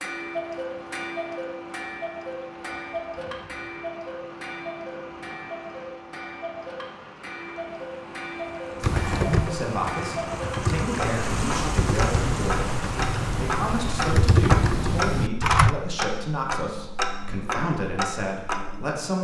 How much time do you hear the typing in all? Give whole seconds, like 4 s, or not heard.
7 s.